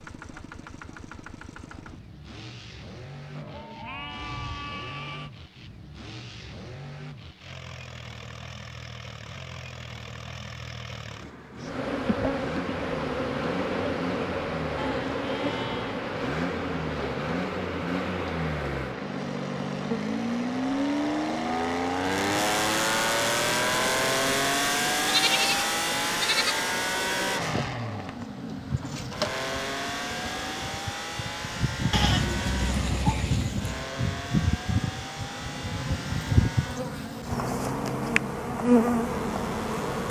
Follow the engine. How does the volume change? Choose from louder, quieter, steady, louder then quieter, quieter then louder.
louder then quieter.